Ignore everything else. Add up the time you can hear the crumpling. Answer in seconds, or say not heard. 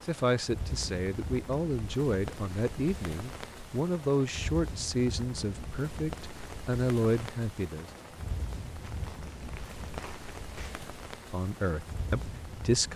2 s.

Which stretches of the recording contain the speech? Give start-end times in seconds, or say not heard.
0.1-7.9, 11.3-12.9.